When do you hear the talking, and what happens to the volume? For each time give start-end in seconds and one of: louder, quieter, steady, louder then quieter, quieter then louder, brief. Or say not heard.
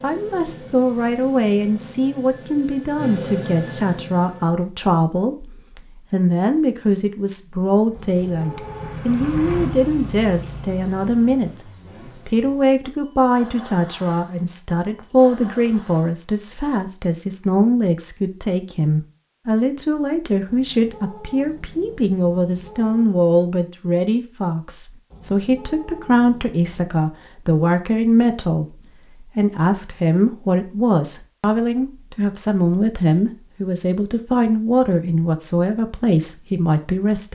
0.0-37.3 steady.